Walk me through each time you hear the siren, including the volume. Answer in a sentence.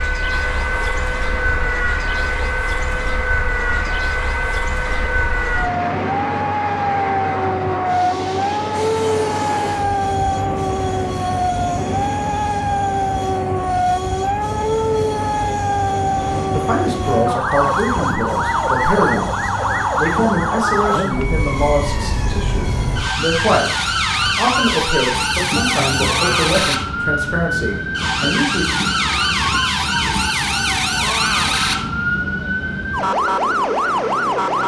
You can hear the siren from 0.0 to 34.6 s, at a steady volume.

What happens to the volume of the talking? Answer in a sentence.
The volume of the talking stays about the same.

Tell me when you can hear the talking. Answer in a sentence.
The talking can be heard from 16.5 to 28.6 s.